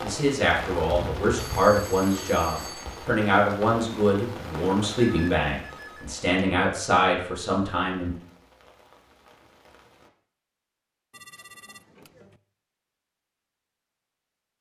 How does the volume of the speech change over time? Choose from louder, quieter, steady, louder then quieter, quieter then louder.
steady.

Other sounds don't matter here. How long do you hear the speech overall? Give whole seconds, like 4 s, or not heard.
8 s.